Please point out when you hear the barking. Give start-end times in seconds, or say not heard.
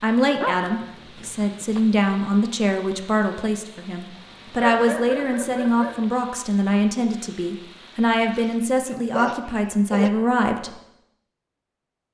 0.4-1.9, 4.6-6.0, 8.3-10.1.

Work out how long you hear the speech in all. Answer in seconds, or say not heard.
11 s.